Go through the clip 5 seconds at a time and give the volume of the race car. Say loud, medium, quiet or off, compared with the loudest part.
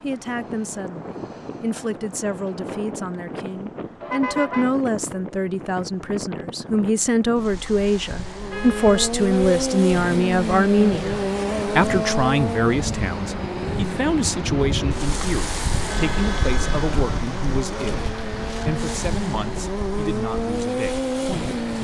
off, loud, loud, medium, loud.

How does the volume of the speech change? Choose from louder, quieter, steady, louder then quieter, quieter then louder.
louder then quieter.